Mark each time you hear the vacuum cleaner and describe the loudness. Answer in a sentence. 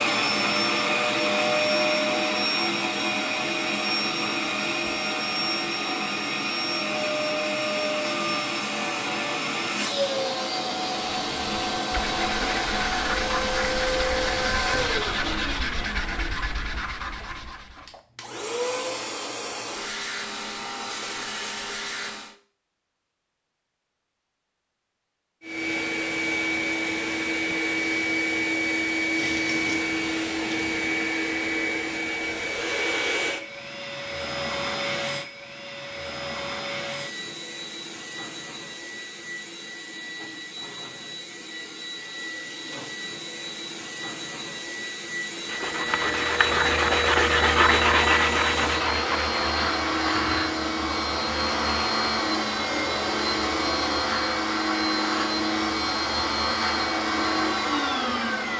You can hear the vacuum cleaner from 0.0 to 22.4 s, getting quieter; and from 25.4 to 58.5 s, getting quieter then louder.